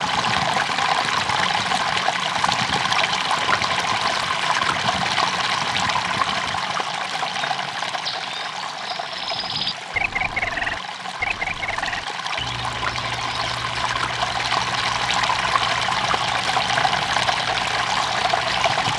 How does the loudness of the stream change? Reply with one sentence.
The volume of the stream goes down, then up.